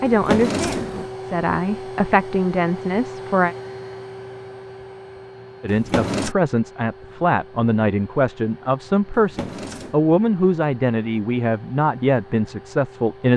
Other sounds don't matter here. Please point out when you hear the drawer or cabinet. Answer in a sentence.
The drawer or cabinet can be heard from 0.1 to 1.1 s, from 5.7 to 6.3 s and from 9.2 to 10.0 s.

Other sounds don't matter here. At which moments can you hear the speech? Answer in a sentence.
The speech can be heard from 0.0 to 3.5 s and from 5.6 to 13.3 s.